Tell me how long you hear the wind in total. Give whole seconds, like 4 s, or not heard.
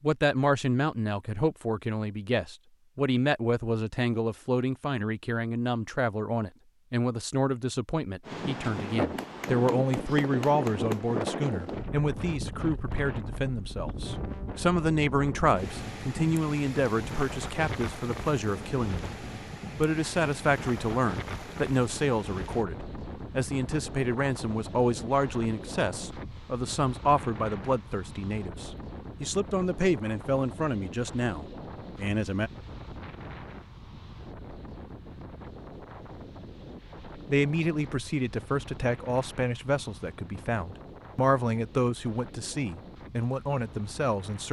36 s.